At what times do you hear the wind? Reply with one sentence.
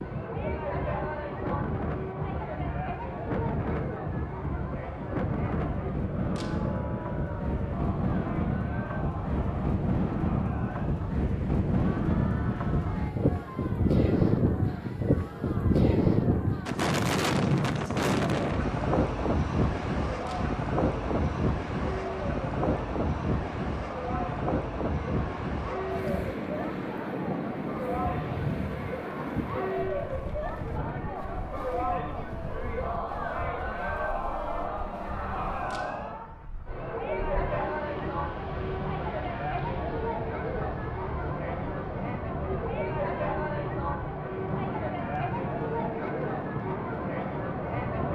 You can hear the wind from 0.0 to 48.1 s.